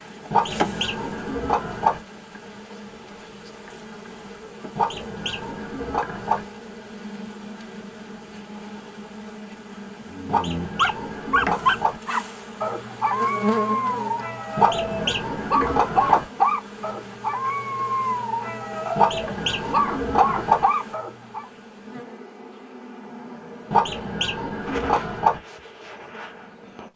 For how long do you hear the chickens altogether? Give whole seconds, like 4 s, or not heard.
10 s.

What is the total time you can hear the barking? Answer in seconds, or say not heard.
11 s.